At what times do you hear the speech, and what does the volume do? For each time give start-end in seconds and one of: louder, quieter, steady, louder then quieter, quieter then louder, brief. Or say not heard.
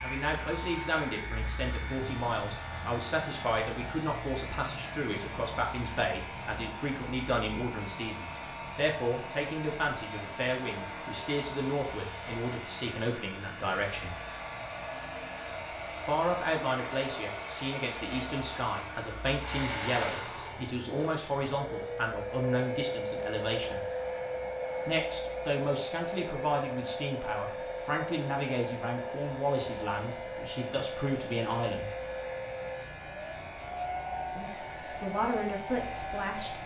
0.0-14.2 steady
15.9-23.8 steady
24.9-31.9 steady
34.4-36.6 brief.